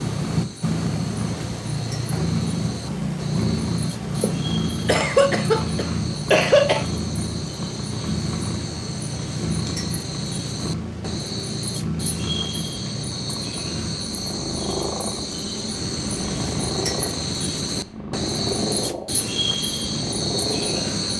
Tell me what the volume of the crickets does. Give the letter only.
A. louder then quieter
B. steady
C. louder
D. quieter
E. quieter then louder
C.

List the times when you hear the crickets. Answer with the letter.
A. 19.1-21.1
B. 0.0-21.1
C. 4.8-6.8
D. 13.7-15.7
B.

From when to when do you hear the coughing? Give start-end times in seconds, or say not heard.
4.8-6.8.